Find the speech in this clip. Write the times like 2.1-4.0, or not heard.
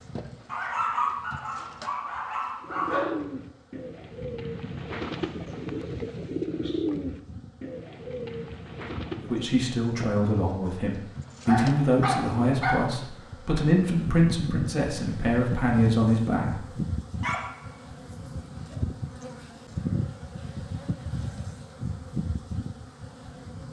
9.2-16.6.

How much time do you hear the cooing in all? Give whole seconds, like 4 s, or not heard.
7 s.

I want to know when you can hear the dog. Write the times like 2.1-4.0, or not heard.
0.5-3.1, 11.4-12.8, 17.2-18.8.